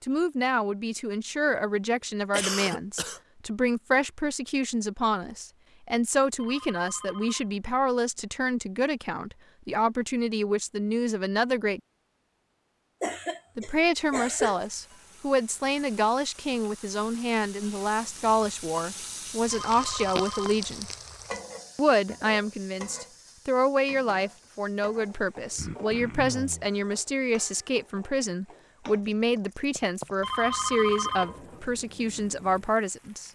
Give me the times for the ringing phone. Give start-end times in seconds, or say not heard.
6.3-7.6, 19.5-20.6, 30.2-31.4.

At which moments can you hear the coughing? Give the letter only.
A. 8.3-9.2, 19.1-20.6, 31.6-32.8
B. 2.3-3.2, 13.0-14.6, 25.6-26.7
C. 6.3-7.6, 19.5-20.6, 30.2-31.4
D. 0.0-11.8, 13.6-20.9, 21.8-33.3
B.